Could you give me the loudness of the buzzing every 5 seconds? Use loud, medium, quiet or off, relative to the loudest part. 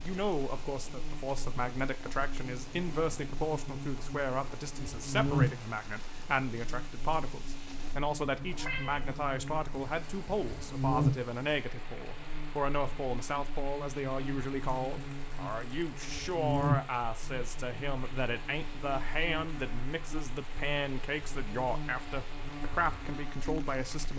medium, loud, loud, loud, medium.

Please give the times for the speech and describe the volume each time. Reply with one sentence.
The speech can be heard from 0.0 to 24.1 s, at a steady volume.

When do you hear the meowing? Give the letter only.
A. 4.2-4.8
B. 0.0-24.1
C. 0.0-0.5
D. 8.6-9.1
D.